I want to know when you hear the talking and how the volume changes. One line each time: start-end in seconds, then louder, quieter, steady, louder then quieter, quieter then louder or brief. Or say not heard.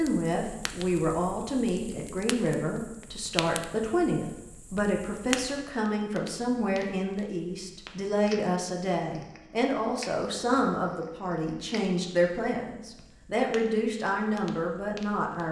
0.0-15.4 steady.